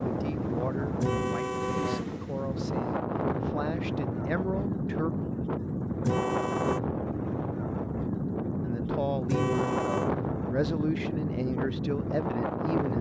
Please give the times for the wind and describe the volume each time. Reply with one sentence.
The wind can be heard from 0.0 to 12.9 s, at a steady volume.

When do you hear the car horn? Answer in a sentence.
The car horn can be heard from 1.0 to 2.0 s, from 6.0 to 6.8 s and from 9.2 to 10.1 s.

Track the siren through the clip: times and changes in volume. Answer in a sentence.
The siren can't be heard in this clip.